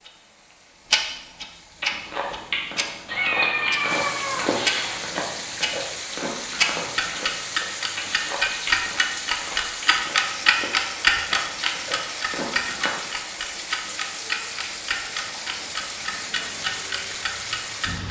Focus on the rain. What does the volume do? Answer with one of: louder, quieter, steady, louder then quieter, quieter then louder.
louder.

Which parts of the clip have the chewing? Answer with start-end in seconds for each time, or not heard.
1.8-12.9.